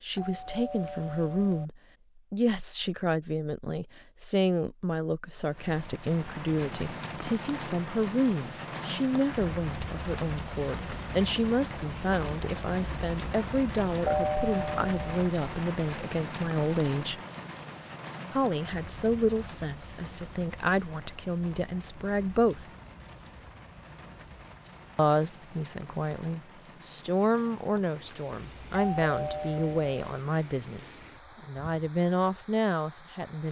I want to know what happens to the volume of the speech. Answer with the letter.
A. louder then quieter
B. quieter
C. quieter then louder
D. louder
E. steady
E.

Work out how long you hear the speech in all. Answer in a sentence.
The speech can be heard for 30 seconds in total.